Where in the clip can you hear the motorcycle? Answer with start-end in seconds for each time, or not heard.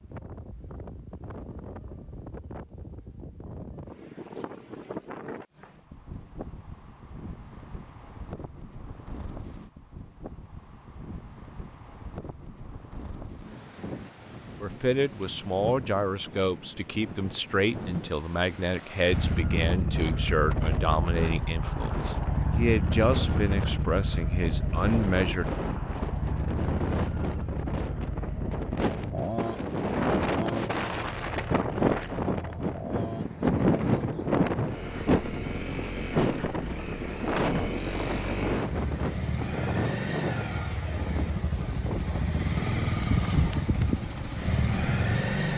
19.1-45.5.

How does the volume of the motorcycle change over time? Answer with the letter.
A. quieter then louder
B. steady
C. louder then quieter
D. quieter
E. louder
A.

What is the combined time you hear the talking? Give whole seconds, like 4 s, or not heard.
11 s.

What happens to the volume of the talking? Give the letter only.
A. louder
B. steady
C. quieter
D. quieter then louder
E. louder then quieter
B.